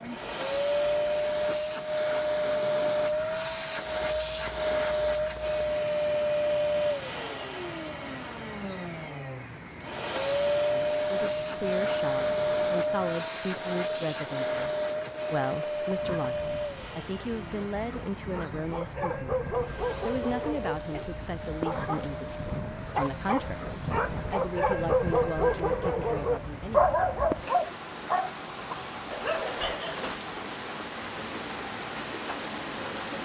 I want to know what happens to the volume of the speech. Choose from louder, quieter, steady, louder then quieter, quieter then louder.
steady.